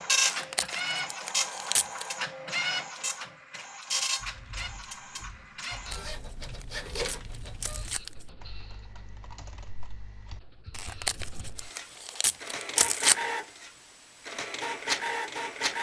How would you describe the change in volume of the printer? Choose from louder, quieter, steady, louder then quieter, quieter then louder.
quieter then louder.